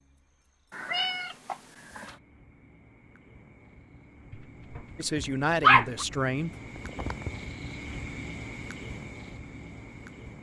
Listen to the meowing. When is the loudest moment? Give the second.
1 s.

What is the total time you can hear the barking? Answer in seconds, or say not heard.
2 s.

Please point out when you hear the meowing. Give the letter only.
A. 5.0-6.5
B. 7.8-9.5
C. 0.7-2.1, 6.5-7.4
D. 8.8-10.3
C.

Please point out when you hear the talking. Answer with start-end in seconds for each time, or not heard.
5.0-6.5.